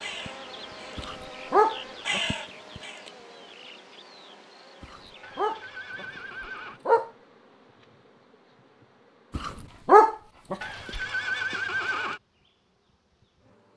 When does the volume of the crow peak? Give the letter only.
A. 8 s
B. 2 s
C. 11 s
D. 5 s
B.